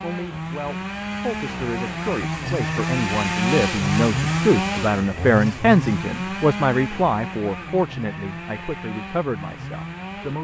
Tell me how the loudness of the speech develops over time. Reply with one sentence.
The loudness of the speech goes up, then down.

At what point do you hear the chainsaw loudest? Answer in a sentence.
The loudest moment of the chainsaw is at 4 seconds.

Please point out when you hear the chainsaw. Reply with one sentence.
The chainsaw can be heard from 0.0 to 10.4 s.